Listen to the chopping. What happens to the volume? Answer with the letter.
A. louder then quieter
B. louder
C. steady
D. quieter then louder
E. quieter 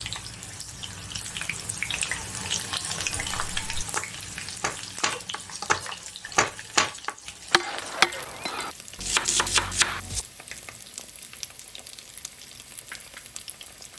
B.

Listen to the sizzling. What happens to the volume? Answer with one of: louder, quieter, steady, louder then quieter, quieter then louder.
quieter.